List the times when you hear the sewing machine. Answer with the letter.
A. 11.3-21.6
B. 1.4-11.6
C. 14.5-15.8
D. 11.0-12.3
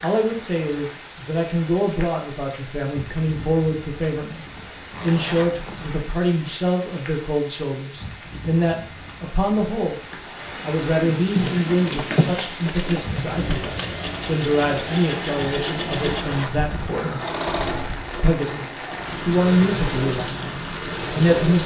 A.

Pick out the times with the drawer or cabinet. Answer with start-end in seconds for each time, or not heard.
11.0-12.3.